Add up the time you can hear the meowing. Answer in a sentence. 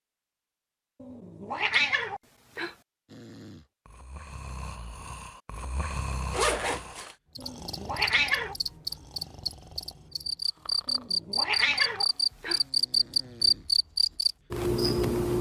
You can hear the meowing for 5 seconds altogether.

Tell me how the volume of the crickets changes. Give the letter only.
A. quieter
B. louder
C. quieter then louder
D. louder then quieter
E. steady
B.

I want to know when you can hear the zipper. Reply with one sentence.
You can hear the zipper from 6.3 to 7.2 s.